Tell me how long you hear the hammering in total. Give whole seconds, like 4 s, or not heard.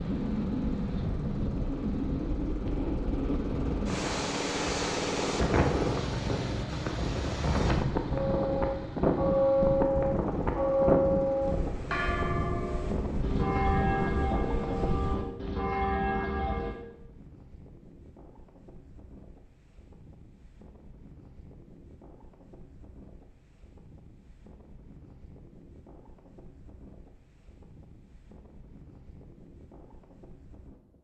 not heard.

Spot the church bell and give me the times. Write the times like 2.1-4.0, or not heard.
8.1-16.8.